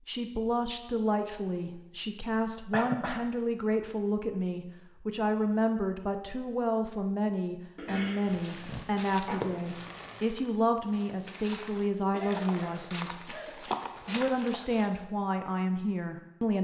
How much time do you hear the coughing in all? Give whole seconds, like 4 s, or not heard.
4 s.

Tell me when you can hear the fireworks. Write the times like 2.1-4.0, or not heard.
8.2-10.3.